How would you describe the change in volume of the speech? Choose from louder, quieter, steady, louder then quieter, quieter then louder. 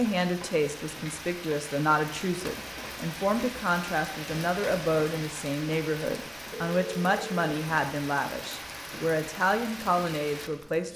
steady.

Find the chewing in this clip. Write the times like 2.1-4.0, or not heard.
not heard.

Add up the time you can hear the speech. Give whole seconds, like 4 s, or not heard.
11 s.